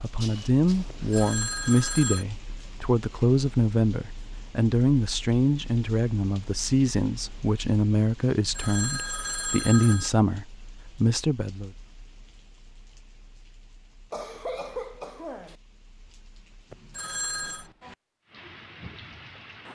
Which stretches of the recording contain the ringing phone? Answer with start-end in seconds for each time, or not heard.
0.9-2.2, 8.3-10.1, 16.7-17.7.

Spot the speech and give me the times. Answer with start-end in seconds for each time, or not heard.
0.0-11.7.